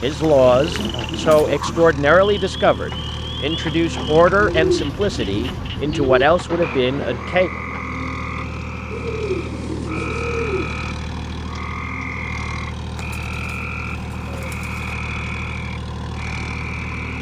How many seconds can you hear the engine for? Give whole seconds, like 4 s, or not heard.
17 s.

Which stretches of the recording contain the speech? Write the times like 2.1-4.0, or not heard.
0.0-7.5.